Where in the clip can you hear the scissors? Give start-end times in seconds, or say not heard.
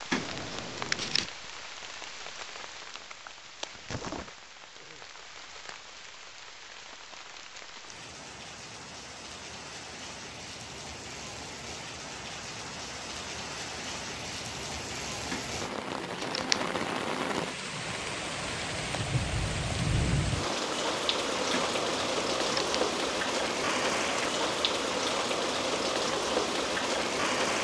0.1-1.3, 15.3-16.7, 21.5-22.8.